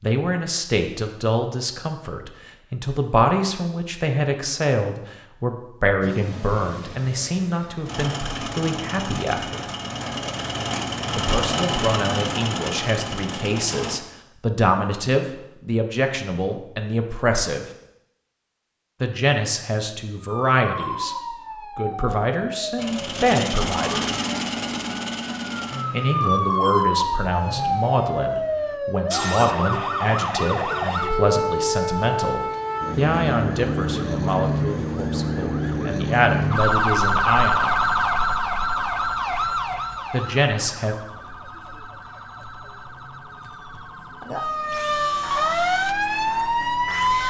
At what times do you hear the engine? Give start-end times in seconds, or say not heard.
6.0-14.0, 22.8-28.8.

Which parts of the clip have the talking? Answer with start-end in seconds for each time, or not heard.
0.0-9.6, 11.2-17.6, 19.0-21.1, 21.8-24.1, 25.9-37.8, 40.1-41.0.